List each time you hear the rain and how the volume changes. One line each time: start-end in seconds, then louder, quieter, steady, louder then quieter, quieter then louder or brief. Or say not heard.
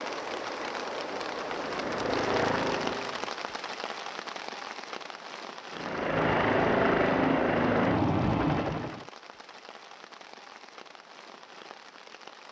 0.0-12.4 quieter.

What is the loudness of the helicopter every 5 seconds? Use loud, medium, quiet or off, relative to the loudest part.
medium, loud, off.